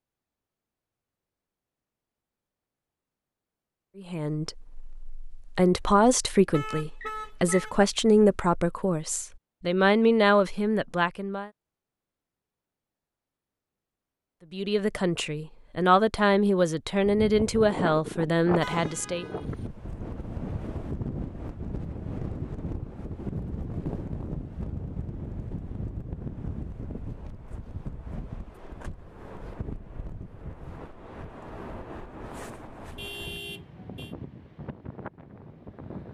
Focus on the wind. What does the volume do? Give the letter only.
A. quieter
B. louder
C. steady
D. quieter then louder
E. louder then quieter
A.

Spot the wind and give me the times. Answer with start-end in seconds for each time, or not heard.
17.1-36.0.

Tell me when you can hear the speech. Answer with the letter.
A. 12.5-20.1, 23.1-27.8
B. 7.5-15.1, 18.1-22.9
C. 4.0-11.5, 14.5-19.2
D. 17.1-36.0
C.